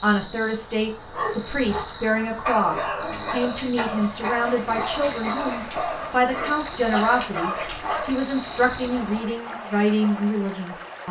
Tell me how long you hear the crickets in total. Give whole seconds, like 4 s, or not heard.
9 s.